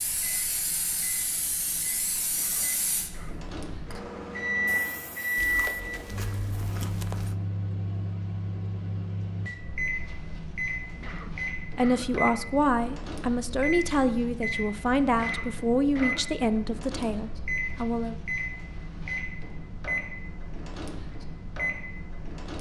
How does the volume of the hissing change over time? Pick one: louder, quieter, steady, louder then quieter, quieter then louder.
quieter.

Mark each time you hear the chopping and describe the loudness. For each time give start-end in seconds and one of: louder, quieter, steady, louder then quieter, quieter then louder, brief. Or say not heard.
not heard.